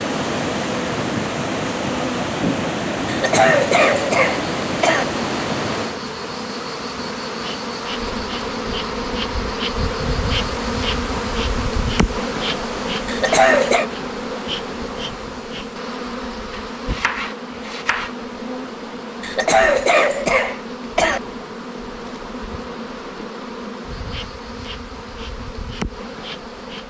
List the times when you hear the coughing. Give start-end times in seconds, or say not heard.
3.0-5.0, 13.1-13.8, 19.2-21.2.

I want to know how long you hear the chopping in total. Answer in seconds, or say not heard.
2 s.